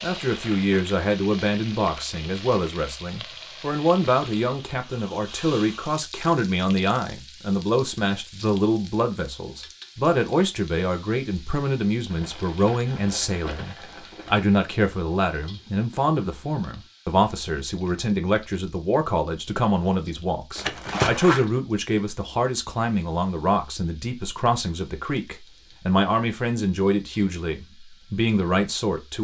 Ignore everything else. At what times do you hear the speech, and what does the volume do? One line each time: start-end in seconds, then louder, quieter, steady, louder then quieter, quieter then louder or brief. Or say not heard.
0.0-29.2 steady.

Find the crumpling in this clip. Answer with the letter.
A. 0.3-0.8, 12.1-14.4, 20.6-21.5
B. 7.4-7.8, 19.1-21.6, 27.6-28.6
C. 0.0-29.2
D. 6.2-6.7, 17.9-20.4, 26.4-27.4
A.